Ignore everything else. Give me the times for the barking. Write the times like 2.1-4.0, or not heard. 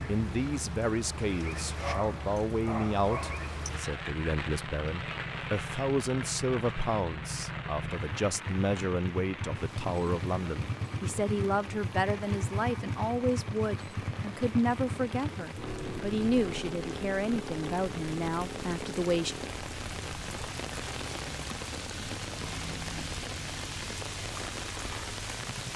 1.8-3.5.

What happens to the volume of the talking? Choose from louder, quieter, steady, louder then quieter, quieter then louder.
steady.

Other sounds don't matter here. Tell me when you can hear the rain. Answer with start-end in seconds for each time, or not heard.
0.0-25.7.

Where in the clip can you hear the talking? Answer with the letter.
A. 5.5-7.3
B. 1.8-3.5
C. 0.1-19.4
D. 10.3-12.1
C.